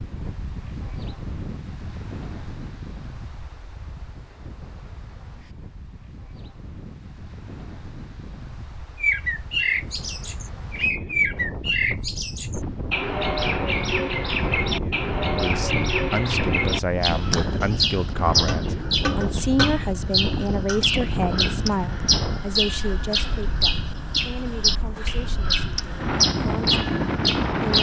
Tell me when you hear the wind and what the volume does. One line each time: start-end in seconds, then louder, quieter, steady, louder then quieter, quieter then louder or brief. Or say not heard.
0.0-27.7 louder.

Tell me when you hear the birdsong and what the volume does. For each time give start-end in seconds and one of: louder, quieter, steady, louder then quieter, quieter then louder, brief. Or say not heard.
9.0-27.7 steady.